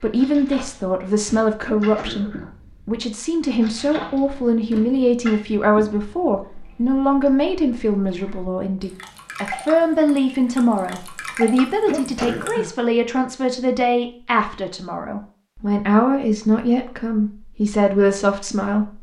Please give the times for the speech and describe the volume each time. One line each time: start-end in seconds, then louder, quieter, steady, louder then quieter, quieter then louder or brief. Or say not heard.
0.0-18.9 steady.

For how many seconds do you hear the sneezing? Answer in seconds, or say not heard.
2 s.